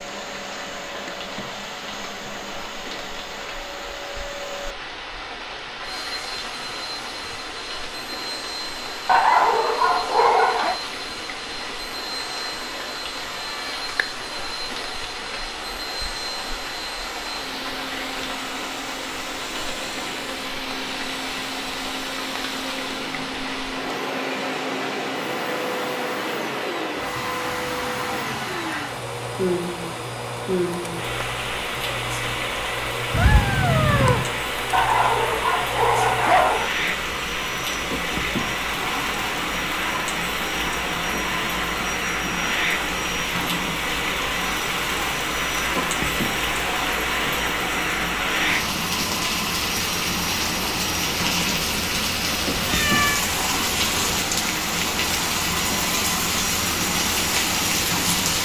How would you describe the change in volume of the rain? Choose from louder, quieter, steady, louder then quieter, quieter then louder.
louder.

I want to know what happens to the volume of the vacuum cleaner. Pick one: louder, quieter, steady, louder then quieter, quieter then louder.
louder.